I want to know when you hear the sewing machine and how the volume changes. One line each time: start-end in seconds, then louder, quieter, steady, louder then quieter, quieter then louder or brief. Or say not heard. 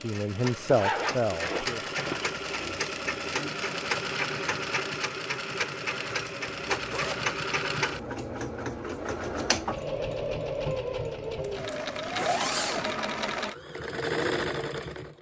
0.0-15.1 steady.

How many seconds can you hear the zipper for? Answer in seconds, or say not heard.
4 s.